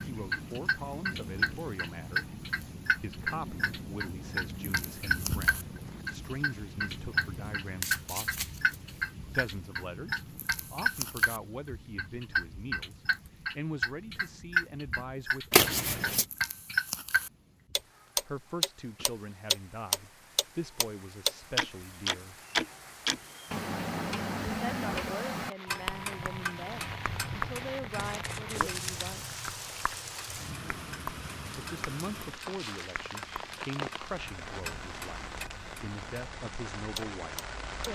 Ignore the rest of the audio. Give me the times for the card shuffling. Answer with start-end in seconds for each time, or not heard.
7.8-9.1, 15.5-16.2, 27.9-29.1.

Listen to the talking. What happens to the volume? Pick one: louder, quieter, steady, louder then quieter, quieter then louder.
steady.